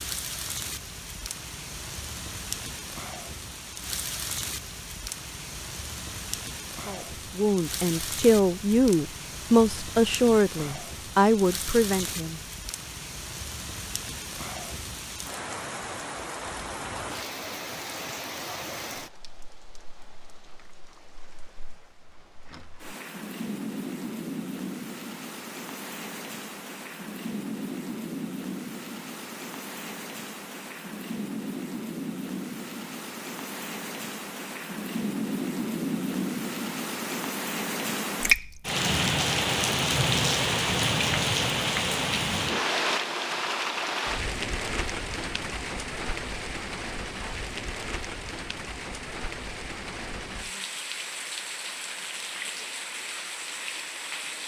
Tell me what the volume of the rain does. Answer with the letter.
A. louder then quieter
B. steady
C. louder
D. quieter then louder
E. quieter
A.